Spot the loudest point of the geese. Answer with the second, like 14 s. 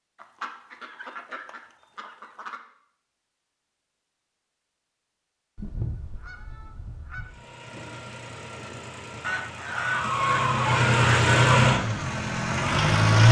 10 s.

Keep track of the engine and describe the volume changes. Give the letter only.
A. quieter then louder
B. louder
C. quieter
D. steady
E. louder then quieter
E.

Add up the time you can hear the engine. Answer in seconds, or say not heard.
6 s.